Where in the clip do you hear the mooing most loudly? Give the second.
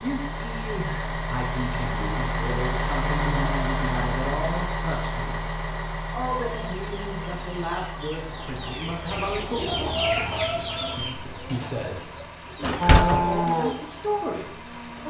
13 s.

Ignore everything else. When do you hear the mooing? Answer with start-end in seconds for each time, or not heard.
12.8-15.0.